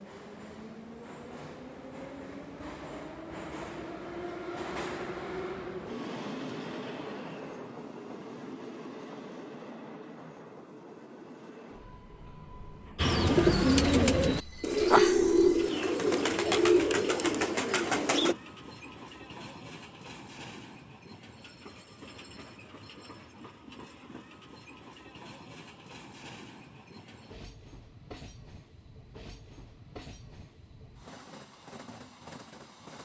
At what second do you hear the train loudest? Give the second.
5 s.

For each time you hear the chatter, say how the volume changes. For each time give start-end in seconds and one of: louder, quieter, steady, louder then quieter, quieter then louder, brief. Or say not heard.
not heard.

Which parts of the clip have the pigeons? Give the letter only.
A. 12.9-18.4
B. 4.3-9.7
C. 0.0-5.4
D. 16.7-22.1
A.